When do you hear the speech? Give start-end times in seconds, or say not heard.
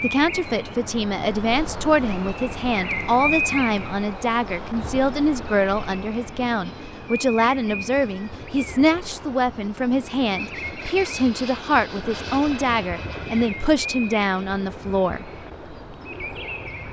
0.0-15.3.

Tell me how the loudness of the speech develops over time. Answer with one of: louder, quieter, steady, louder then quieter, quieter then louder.
steady.